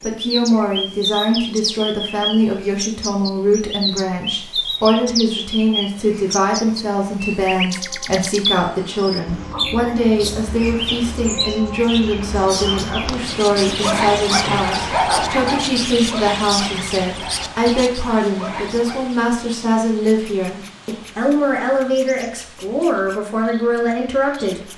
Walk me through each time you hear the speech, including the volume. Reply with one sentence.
The speech can be heard from 0.0 to 24.6 s, at a steady volume.